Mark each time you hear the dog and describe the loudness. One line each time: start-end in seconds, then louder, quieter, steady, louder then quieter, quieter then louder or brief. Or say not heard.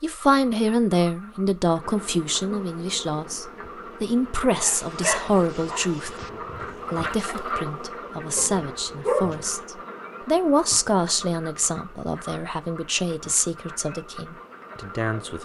4.6-9.4 quieter then louder.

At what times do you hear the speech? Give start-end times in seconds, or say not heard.
0.0-6.2, 6.9-15.3.